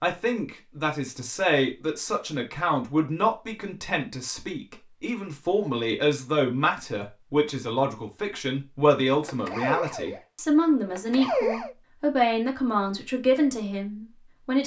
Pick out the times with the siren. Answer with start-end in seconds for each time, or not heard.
9.2-11.8.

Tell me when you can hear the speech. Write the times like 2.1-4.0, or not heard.
0.0-14.6.